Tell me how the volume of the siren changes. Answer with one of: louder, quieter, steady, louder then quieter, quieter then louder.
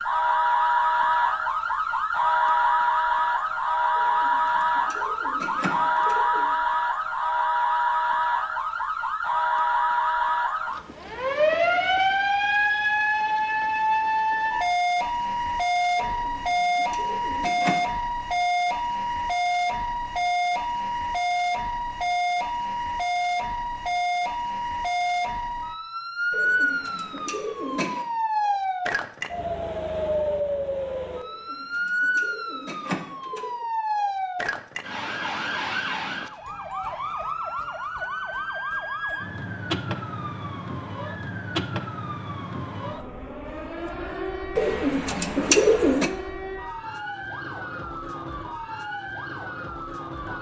quieter.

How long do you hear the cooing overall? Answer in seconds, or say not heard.
10 s.